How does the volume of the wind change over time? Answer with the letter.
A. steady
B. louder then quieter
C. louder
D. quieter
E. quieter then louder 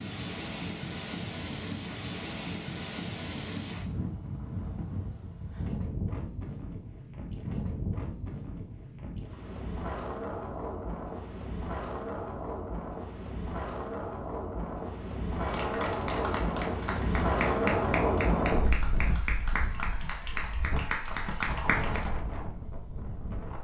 B.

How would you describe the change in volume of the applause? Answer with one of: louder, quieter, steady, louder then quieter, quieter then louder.
steady.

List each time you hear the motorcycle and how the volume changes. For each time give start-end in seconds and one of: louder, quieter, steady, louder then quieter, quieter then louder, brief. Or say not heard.
not heard.